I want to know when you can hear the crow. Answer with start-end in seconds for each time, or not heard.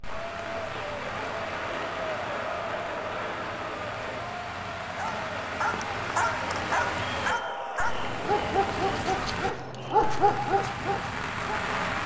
not heard.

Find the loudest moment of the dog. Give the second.
10 s.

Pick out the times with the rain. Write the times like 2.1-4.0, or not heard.
0.0-12.0.